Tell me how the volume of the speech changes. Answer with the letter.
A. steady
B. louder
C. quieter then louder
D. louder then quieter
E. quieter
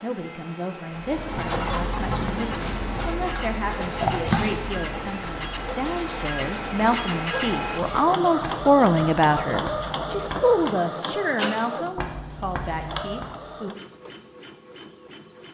D.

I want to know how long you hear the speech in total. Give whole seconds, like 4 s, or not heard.
14 s.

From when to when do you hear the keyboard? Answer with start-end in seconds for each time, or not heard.
not heard.